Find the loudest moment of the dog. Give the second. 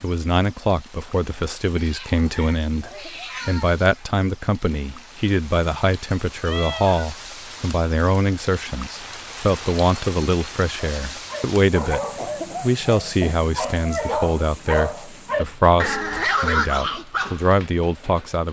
16 s.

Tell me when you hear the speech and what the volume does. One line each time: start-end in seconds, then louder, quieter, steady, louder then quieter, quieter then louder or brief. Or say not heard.
0.0-18.4 steady.